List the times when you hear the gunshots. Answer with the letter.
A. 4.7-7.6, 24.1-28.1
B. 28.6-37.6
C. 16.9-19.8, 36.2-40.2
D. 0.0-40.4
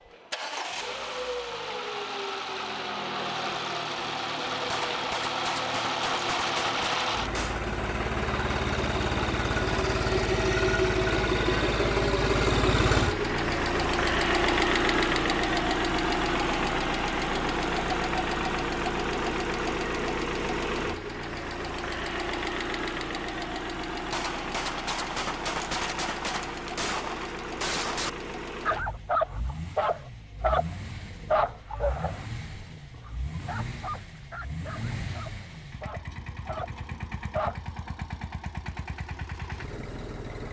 A.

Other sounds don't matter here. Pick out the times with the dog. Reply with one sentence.
You can hear the dog from 28.6 to 37.6 s.